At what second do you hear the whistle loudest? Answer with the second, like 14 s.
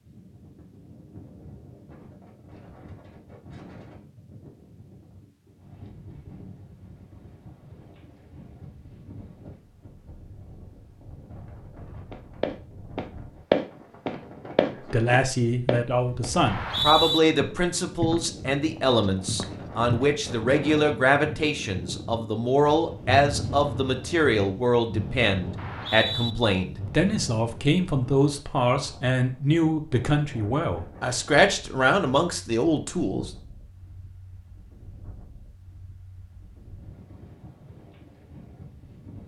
17 s.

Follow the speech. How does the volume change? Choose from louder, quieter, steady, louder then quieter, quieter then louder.
steady.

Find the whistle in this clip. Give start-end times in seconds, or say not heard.
16.4-17.2, 25.6-26.4.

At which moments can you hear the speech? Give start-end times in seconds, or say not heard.
14.7-33.3.